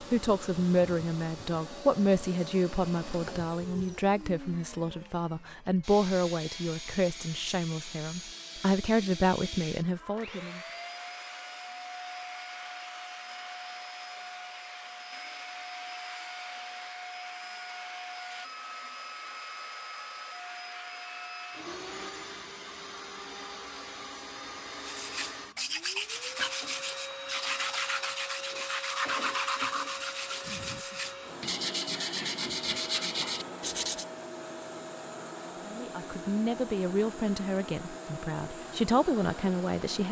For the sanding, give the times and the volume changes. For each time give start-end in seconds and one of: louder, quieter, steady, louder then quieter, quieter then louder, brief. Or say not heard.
24.9-34.0 steady.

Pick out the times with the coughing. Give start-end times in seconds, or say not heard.
30.4-31.1.